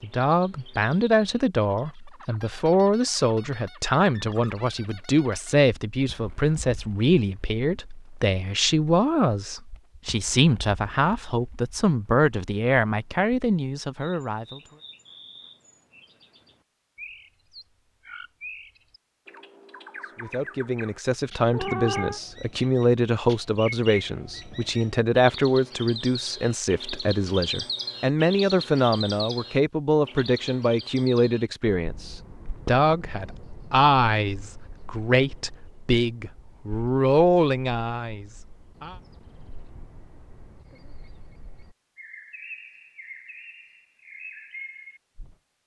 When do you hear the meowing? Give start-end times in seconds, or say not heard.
21.5-22.2.